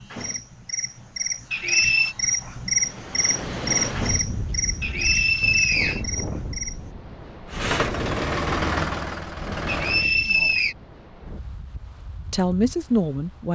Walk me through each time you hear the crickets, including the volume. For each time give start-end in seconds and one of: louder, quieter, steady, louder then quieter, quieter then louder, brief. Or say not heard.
0.0-6.9 louder then quieter.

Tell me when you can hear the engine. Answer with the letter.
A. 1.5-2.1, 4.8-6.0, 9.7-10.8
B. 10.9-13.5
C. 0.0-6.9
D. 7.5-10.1
D.